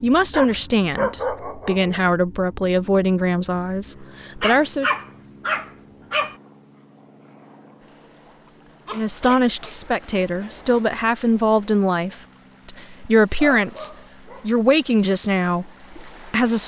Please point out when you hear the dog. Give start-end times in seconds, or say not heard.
0.3-2.1, 4.4-6.3, 8.8-10.8, 13.3-14.5.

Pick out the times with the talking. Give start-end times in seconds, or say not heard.
0.0-4.9, 8.9-16.6.